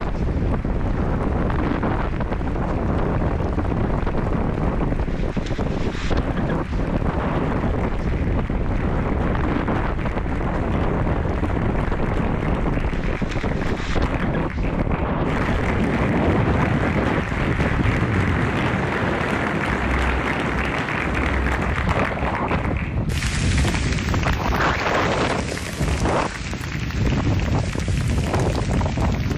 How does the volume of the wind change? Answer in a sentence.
The loudness of the wind stays about the same.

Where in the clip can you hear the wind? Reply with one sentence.
You can hear the wind from 0.0 to 29.3 s.